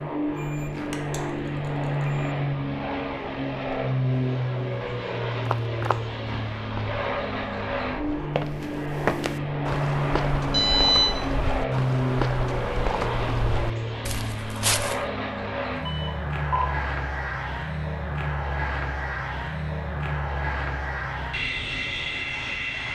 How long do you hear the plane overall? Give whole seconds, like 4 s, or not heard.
23 s.